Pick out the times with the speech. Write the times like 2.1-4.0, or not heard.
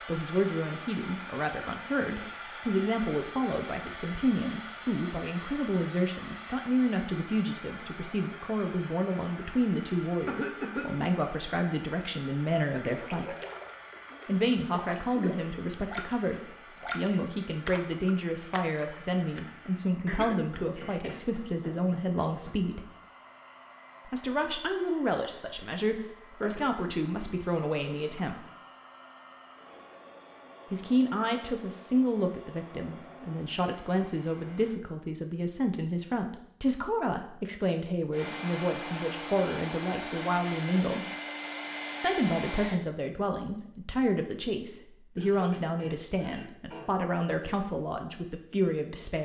0.1-13.3, 14.2-22.9, 24.1-28.4, 30.7-41.0, 42.0-49.1.